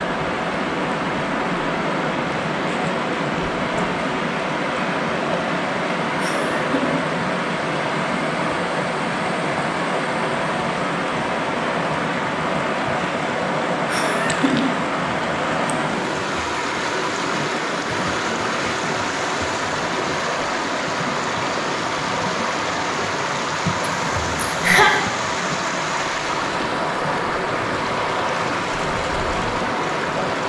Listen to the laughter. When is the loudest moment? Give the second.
25 s.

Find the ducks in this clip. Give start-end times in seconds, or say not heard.
not heard.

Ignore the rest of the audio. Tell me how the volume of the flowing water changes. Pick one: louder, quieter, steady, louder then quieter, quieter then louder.
steady.